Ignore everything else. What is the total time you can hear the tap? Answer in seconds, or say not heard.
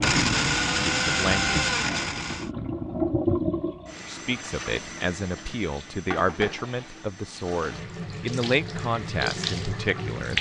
10 s.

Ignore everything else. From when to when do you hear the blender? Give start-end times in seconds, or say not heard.
0.0-2.5.